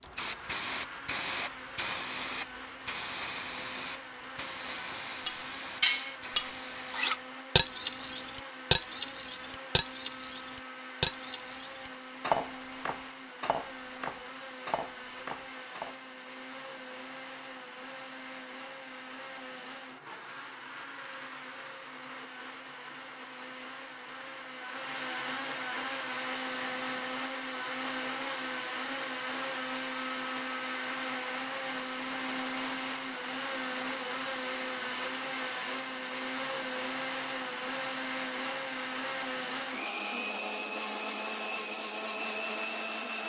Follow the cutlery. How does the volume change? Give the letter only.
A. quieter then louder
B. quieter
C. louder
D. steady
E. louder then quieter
B.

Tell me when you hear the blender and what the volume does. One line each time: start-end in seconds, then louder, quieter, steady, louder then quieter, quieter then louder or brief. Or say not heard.
0.0-43.2 louder.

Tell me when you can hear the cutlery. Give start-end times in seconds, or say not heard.
5.2-15.9.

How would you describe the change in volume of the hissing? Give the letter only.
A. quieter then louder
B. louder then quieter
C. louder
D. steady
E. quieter
E.